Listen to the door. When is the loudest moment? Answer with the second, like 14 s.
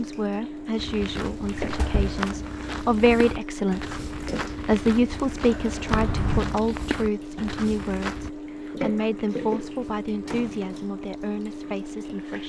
6 s.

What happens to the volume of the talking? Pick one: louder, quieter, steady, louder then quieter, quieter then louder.
louder then quieter.